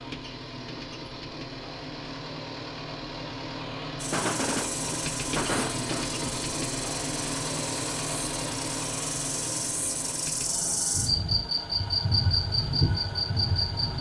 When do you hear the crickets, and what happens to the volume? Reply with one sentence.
You can hear the crickets from 4.0 to 13.9 s, getting louder.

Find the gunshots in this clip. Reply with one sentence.
You can hear the gunshots from 4.1 to 6.1 s.